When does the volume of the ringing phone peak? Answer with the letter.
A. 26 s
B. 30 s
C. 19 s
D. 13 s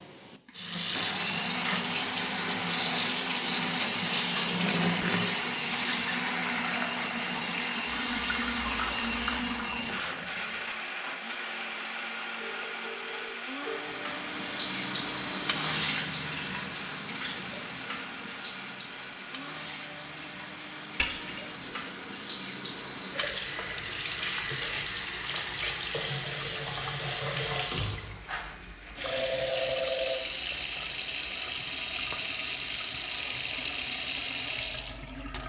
B.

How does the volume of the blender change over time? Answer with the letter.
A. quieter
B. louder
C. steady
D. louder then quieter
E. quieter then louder
A.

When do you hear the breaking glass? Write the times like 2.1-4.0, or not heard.
20.9-21.5.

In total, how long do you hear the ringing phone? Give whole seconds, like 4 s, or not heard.
3 s.